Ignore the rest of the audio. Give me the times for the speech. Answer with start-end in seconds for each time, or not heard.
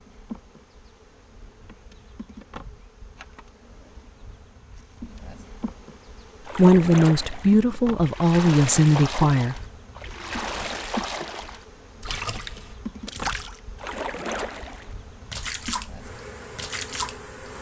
6.5-9.6.